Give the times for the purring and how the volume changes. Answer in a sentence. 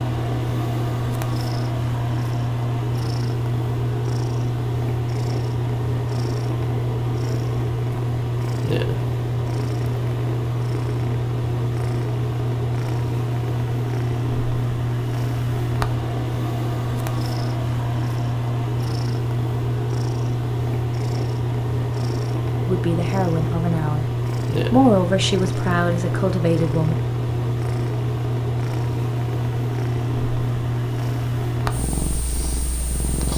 You can hear the purring from 0.0 to 33.3 s, at a steady volume.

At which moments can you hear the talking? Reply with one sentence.
You can hear the talking from 22.6 to 24.1 s and from 24.7 to 26.9 s.